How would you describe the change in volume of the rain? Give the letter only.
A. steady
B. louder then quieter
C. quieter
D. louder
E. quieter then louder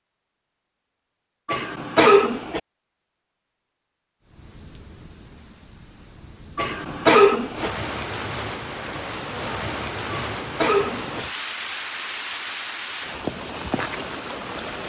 D.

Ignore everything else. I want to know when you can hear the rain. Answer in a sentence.
You can hear the rain from 4.2 to 14.8 s.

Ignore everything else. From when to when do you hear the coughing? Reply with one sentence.
The coughing can be heard from 1.4 to 2.6 s, from 6.5 to 7.7 s and from 10.1 to 11.2 s.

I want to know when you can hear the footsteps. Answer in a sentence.
You can't hear the footsteps here.